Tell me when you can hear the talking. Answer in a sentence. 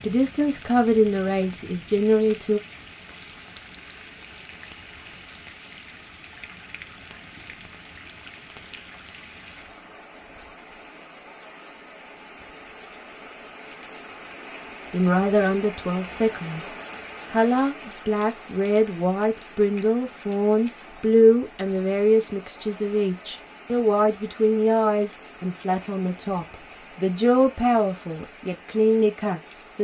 The talking can be heard from 0.0 to 2.6 s, from 14.9 to 16.6 s and from 17.3 to 29.7 s.